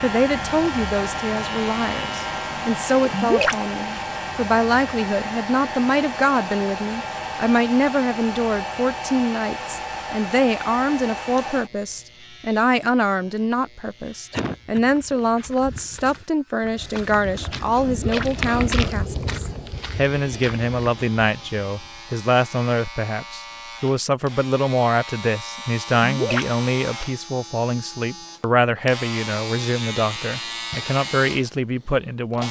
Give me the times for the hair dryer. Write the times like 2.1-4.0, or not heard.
0.0-11.7.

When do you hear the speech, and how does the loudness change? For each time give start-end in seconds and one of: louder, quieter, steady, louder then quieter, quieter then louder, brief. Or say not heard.
0.0-32.4 steady.